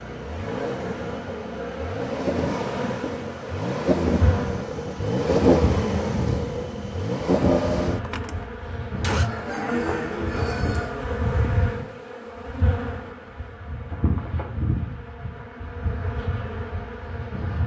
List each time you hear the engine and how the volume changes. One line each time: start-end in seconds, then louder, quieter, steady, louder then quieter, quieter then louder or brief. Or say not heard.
0.0-9.3 louder.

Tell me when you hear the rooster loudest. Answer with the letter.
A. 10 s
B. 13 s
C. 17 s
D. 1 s
A.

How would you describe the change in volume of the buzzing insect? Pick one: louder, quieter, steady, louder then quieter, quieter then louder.
steady.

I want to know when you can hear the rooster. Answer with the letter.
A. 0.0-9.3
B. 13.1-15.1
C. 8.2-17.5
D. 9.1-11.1
D.